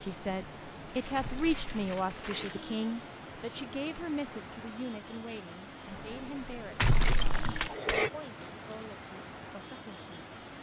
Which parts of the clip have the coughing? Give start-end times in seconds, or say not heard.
1.1-2.6, 6.8-8.1.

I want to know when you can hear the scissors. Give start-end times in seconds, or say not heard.
not heard.